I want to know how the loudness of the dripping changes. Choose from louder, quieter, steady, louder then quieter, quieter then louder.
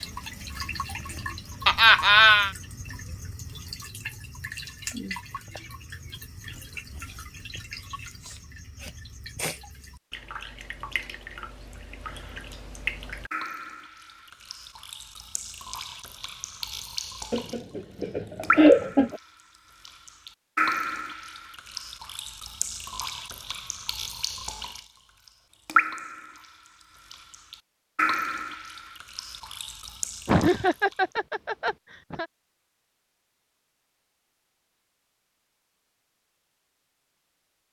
louder.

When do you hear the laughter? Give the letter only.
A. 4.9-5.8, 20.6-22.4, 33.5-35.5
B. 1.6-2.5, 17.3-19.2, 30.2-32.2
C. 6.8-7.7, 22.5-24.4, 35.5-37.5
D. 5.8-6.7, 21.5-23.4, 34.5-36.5
B.